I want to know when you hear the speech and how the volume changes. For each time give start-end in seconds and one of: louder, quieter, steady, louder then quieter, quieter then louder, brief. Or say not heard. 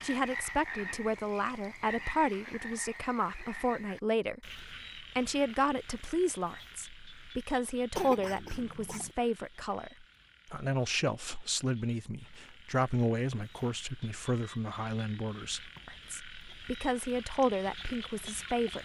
0.0-18.8 steady.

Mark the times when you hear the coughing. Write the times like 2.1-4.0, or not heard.
8.0-9.2.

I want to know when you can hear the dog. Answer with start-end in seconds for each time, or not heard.
not heard.